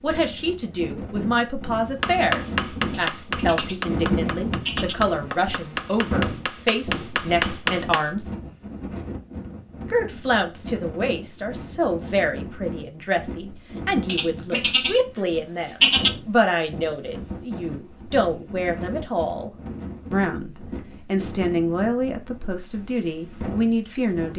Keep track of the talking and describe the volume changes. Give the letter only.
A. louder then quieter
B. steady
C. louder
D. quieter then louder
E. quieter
B.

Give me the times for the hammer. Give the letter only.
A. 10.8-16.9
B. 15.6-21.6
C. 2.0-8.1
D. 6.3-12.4
C.